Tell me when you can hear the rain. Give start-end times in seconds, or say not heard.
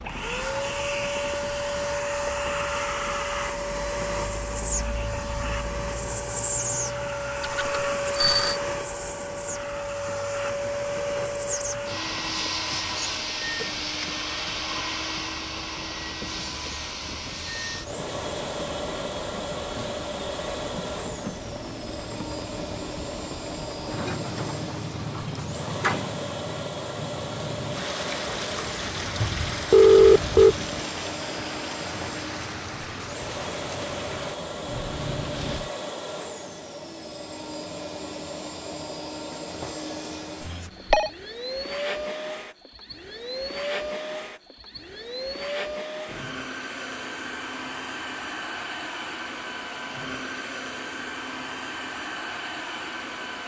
0.0-35.7.